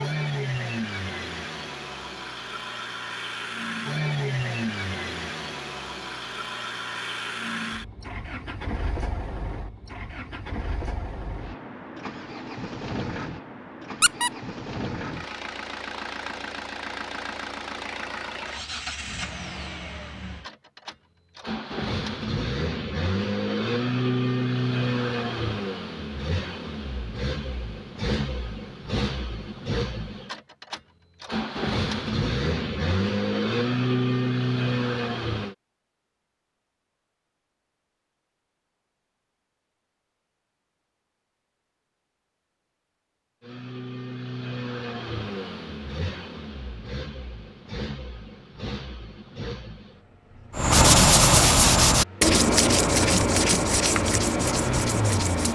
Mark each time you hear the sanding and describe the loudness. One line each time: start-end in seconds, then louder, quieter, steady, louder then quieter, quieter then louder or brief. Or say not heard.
50.5-55.5 quieter.